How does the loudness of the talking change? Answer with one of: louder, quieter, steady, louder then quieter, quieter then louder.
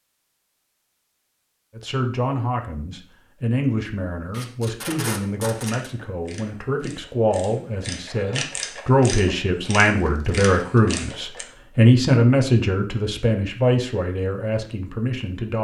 louder then quieter.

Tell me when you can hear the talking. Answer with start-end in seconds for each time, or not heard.
1.8-15.6.